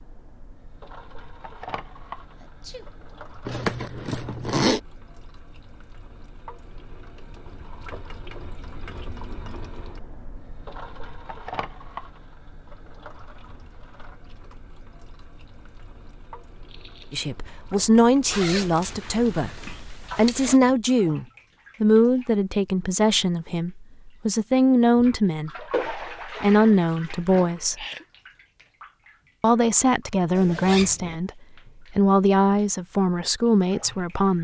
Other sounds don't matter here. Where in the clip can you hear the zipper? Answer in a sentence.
You can hear the zipper from 3.5 to 4.8 s, from 18.3 to 20.6 s and from 30.4 to 31.2 s.